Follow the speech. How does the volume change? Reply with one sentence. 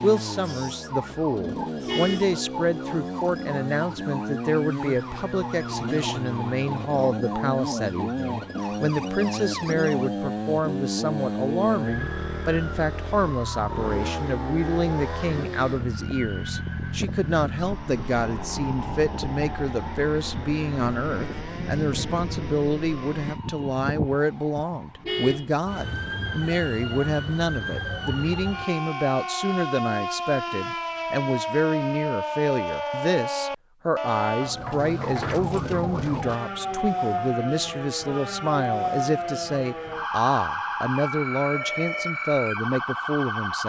The loudness of the speech stays about the same.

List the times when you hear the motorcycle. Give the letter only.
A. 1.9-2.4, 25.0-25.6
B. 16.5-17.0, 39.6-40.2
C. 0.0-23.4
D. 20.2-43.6
C.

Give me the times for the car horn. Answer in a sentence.
You can hear the car horn from 1.9 to 2.4 s and from 25.0 to 25.6 s.